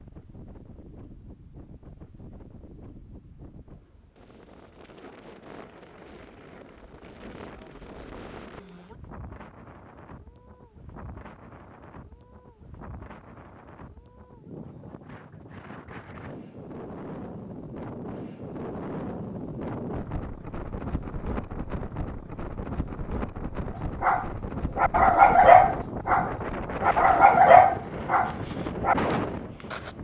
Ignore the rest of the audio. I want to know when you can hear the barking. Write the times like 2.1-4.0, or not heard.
24.0-28.9.